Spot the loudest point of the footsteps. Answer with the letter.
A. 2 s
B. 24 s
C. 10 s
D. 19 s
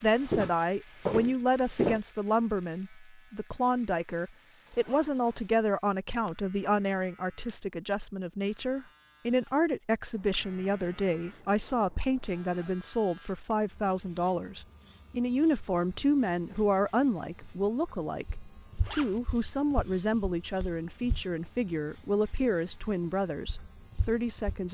A.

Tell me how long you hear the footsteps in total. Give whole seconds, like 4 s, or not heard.
6 s.